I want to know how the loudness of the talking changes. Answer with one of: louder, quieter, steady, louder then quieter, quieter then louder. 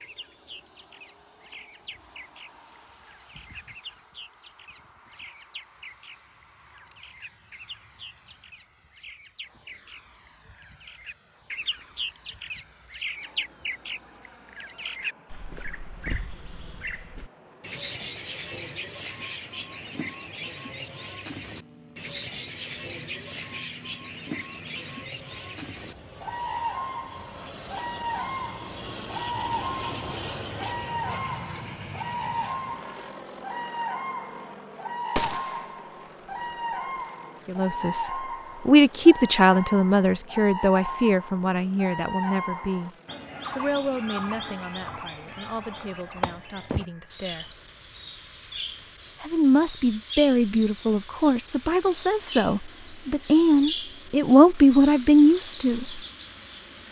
quieter then louder.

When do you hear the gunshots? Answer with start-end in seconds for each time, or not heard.
35.1-35.8.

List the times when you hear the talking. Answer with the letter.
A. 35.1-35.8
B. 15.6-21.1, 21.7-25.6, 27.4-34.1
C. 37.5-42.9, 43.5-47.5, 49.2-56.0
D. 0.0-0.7
C.